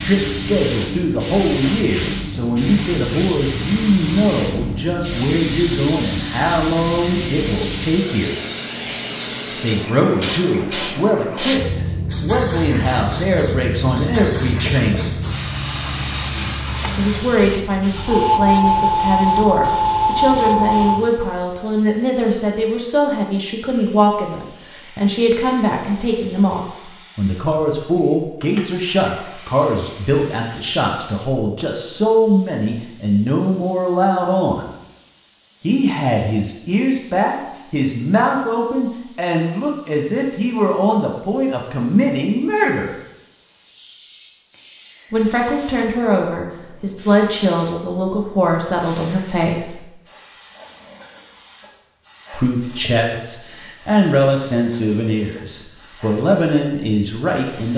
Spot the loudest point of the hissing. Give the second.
19 s.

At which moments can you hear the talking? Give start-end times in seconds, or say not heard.
0.0-8.3, 9.5-15.1, 16.9-34.7, 35.6-42.9, 45.1-49.9, 52.3-57.7.